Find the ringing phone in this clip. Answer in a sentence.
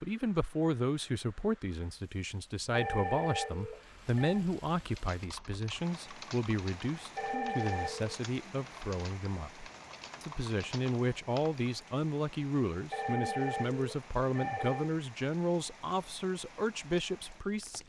The ringing phone can be heard from 2.7 to 4.5 s, from 7.2 to 8.2 s and from 12.9 to 14.9 s.